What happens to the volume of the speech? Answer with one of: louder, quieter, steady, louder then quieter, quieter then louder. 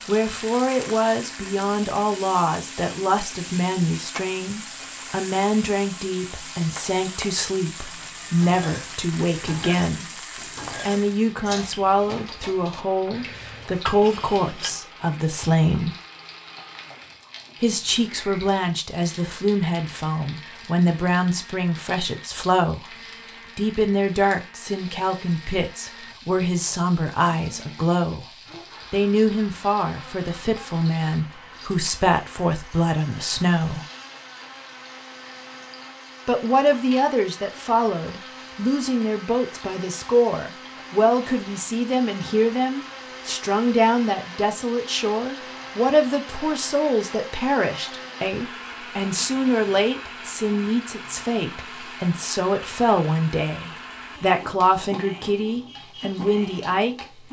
steady.